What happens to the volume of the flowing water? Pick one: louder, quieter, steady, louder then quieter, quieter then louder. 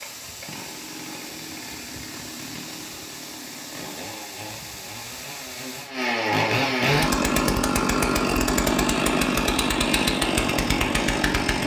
steady.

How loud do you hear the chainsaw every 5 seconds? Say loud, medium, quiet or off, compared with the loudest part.
quiet, loud, loud.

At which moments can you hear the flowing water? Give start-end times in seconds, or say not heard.
0.0-6.0.